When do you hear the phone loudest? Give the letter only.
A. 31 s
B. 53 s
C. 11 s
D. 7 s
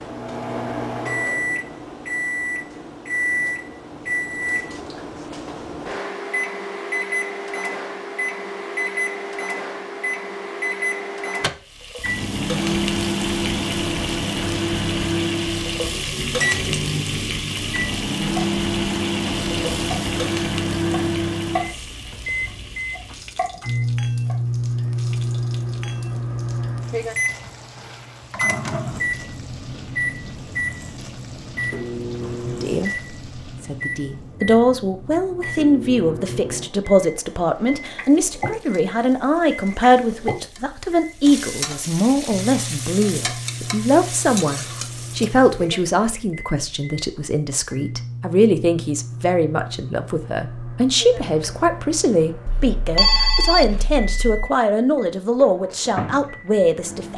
B.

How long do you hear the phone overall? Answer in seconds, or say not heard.
2 s.